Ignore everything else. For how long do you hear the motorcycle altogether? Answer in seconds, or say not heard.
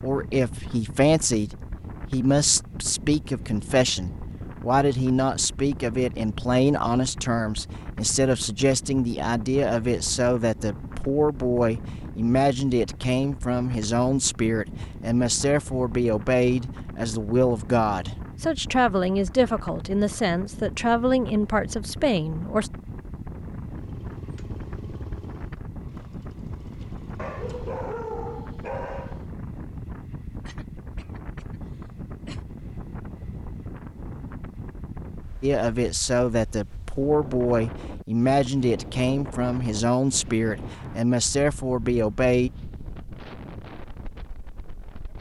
4 s.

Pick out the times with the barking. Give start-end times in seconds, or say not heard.
27.1-29.2.